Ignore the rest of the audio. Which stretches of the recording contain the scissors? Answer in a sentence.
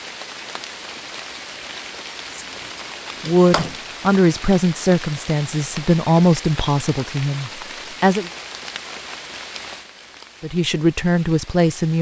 You can hear the scissors from 2.3 to 3.8 s.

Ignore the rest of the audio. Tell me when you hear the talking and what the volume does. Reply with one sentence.
You can hear the talking from 3.2 to 8.3 s, getting quieter; and briefly from 10.4 to 11.9 s.